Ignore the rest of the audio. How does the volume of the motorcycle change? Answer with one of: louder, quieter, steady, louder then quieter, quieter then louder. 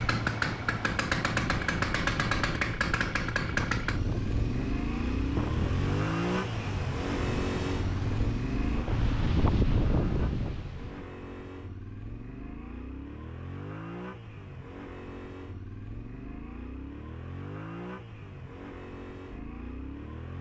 quieter.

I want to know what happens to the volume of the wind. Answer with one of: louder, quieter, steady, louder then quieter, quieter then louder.
louder.